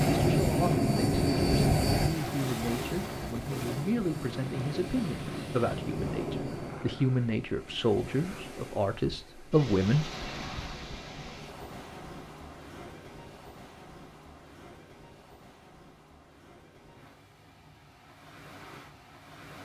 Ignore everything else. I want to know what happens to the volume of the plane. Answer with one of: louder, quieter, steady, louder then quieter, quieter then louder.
quieter.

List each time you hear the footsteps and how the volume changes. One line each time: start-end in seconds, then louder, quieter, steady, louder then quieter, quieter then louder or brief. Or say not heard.
not heard.